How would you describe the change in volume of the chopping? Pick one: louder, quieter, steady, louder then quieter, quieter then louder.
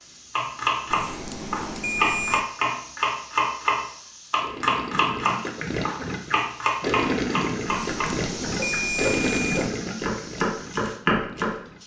quieter then louder.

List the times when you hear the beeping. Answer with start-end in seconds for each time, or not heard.
0.9-2.5, 7.7-9.7.